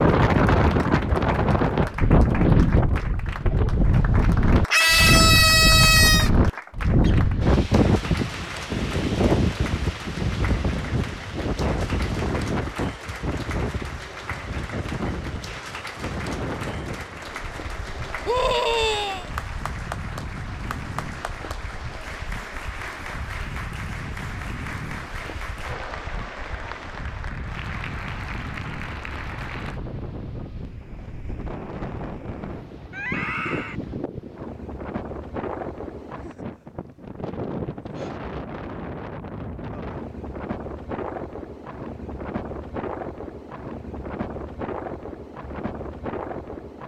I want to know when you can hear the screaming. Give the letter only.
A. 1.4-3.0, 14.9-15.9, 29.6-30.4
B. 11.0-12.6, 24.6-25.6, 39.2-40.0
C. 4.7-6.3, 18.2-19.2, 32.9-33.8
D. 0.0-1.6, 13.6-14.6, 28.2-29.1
C.